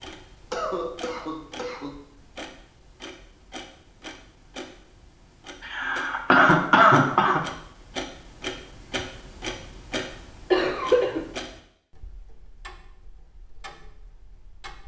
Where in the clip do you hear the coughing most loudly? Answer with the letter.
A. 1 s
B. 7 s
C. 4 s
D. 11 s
B.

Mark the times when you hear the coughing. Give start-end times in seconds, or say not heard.
0.5-1.9, 5.7-7.4, 10.5-11.2.